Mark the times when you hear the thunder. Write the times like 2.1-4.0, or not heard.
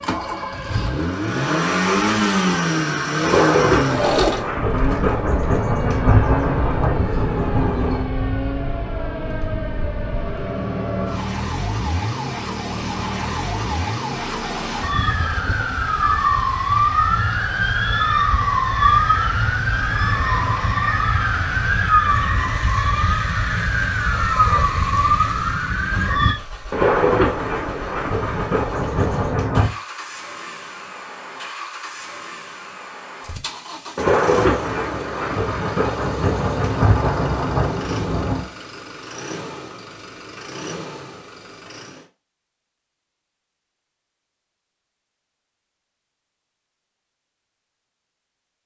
3.2-8.1, 26.7-29.7, 34.0-38.5.